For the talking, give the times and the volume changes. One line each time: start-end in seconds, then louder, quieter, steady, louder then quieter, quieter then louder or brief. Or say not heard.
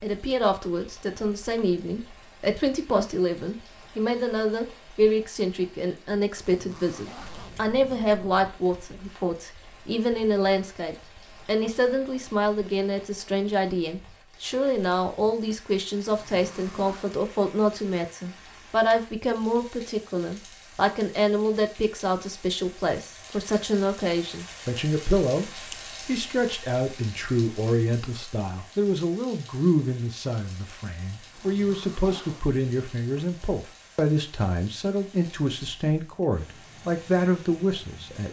0.0-38.2 steady.